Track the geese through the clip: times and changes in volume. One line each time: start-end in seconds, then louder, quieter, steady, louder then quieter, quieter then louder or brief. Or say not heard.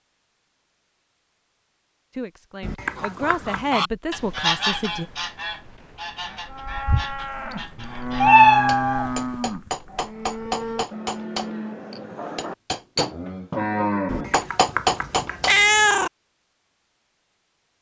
3.0-8.4 quieter.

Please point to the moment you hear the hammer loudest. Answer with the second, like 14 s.
15 s.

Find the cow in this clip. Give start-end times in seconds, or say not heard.
6.2-14.3.